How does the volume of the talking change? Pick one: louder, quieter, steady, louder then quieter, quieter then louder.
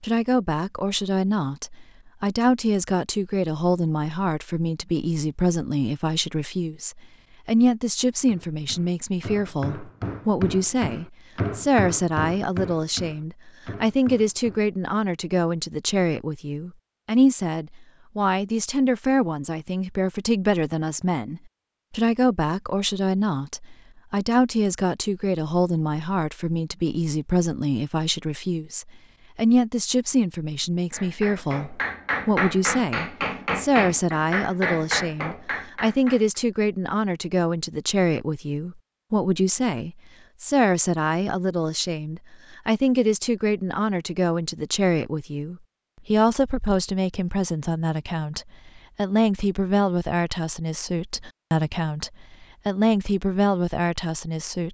steady.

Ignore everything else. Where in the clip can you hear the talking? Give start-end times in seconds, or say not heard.
0.0-54.6.